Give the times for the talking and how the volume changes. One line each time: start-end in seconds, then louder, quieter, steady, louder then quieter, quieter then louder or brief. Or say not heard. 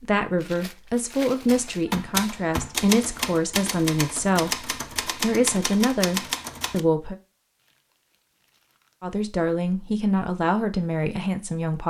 0.0-7.2 steady
9.0-11.8 brief.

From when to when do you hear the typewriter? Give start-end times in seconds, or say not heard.
1.4-6.8.